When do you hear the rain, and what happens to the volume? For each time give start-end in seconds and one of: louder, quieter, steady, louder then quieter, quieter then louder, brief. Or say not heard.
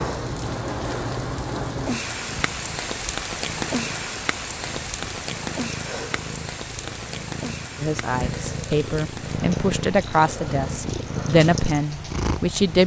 0.0-12.8 quieter.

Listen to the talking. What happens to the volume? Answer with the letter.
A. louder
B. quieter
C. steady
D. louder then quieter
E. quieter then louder
D.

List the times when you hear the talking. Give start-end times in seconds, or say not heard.
7.8-12.8.